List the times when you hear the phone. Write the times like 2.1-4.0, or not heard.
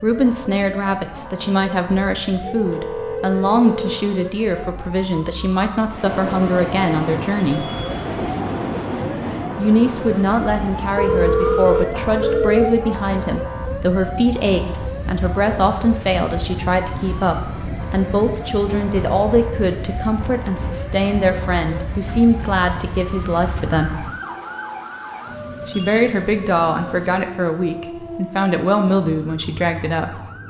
2.4-4.0, 10.9-12.8, 24.2-26.1.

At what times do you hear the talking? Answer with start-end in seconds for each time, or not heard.
0.0-7.7, 9.6-24.1, 25.6-30.2.